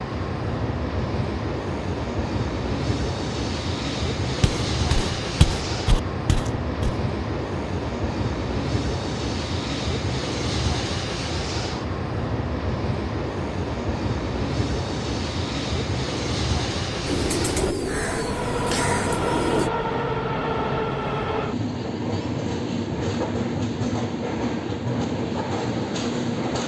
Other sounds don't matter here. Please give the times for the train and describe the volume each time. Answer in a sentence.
The train can be heard from 0.0 to 26.6 s, at a steady volume.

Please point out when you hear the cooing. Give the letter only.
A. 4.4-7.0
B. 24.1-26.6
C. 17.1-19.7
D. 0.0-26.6
C.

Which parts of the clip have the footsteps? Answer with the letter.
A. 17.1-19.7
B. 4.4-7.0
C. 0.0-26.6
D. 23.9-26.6
B.